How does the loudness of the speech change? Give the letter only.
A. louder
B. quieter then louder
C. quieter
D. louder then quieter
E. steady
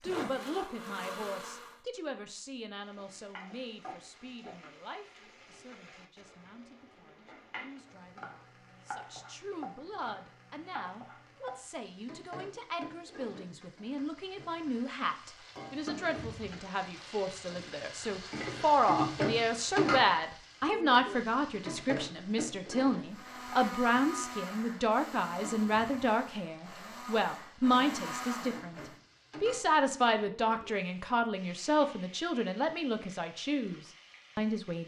A.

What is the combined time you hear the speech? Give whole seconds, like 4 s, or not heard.
34 s.